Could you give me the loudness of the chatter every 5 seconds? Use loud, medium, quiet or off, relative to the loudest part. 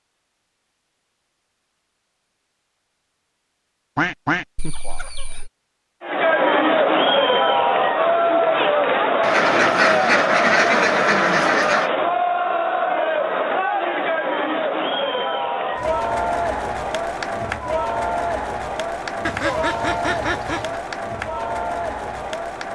off, loud, loud, medium, medium.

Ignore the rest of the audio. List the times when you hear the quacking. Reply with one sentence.
You can hear the quacking from 4.0 to 5.5 s, from 9.2 to 11.9 s and from 19.2 to 20.8 s.